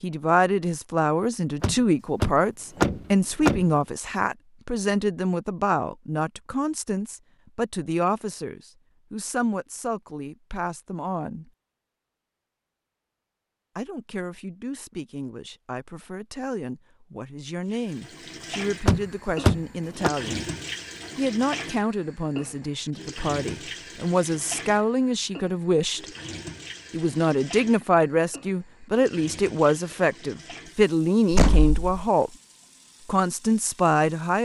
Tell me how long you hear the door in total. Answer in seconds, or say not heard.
4 s.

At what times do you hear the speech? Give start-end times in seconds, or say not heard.
0.0-11.5, 13.8-20.5, 21.1-26.1, 26.9-32.3, 33.0-34.3.